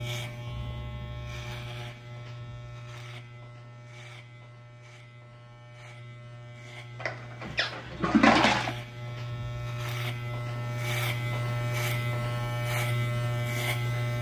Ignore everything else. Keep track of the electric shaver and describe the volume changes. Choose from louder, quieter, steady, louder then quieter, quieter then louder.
quieter then louder.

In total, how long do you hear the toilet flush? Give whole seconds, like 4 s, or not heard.
2 s.